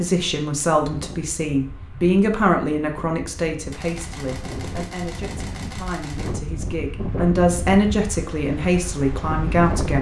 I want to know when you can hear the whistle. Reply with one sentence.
The whistle can't be heard in this clip.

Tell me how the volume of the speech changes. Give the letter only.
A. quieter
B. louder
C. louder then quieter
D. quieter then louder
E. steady
D.